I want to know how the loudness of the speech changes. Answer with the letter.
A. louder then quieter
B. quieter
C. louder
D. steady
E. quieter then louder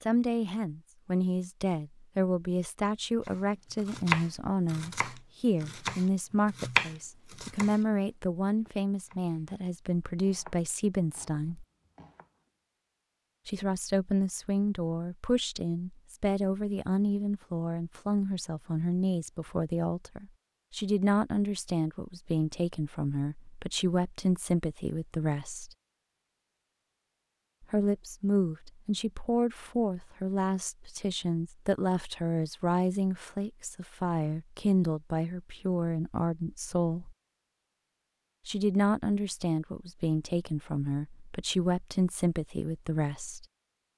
D.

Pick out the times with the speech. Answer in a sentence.
The speech can be heard from 0.0 to 11.7 s, from 13.4 to 25.7 s, from 27.6 to 37.1 s and from 38.5 to 43.5 s.